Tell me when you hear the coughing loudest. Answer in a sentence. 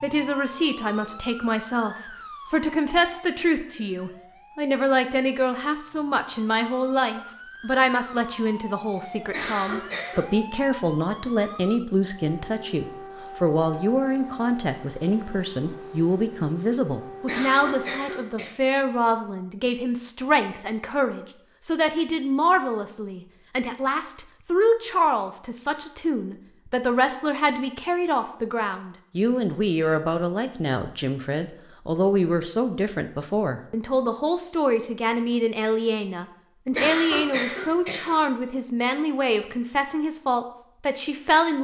The loudest moment of the coughing is at 37 seconds.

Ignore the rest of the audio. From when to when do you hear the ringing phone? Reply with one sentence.
The ringing phone can't be heard in this clip.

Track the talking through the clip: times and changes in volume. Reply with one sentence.
You can hear the talking from 0.0 to 41.6 s, at a steady volume.